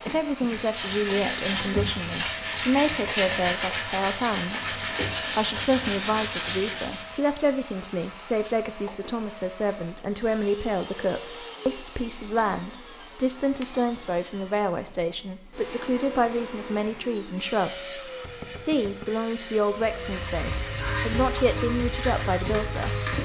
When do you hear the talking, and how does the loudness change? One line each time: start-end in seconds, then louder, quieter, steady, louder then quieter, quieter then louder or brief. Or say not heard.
0.1-23.1 steady.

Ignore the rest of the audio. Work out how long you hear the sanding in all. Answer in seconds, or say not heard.
10 s.